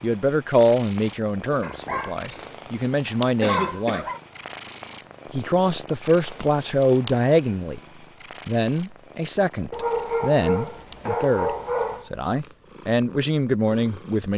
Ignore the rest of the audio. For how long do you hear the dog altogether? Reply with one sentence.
You can hear the dog for 5 seconds altogether.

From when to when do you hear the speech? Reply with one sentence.
The speech can be heard from 0.0 to 4.0 s, from 5.3 to 7.8 s and from 8.4 to 14.3 s.